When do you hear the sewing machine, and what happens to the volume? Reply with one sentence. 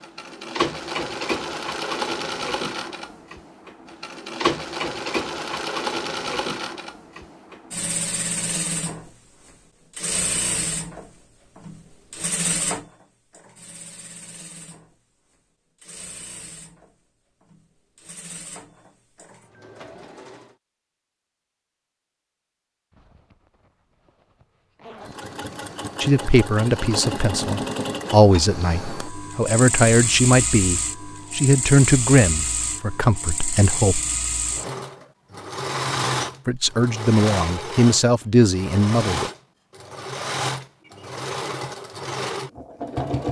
The sewing machine can be heard from 0.0 to 20.6 s, getting quieter; and from 25.0 to 43.2 s, at a steady volume.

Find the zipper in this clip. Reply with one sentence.
You can hear the zipper from 22.9 to 25.2 s.